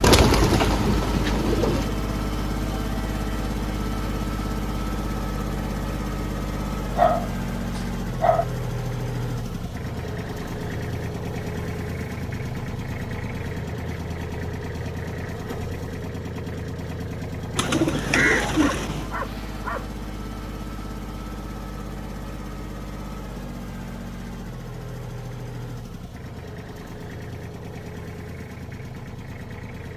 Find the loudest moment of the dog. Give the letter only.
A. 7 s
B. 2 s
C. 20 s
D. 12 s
A.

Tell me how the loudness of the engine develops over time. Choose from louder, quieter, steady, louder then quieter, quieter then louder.
quieter.